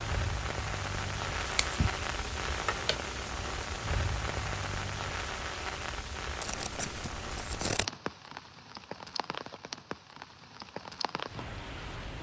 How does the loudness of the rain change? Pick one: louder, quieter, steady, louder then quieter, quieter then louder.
quieter.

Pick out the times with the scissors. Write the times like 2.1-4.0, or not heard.
1.4-3.0, 6.4-7.9.